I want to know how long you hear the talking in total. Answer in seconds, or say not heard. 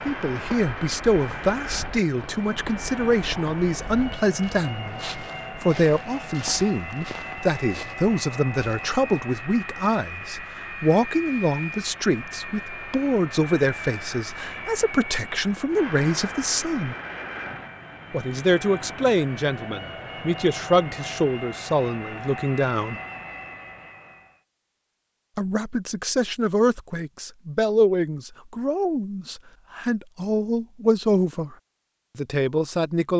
29 s.